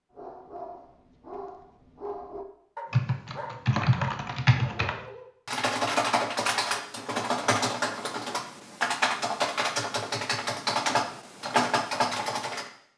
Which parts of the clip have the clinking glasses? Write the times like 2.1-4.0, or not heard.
not heard.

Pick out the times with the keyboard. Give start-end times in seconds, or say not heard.
2.9-12.7.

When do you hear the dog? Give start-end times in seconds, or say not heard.
0.1-5.3.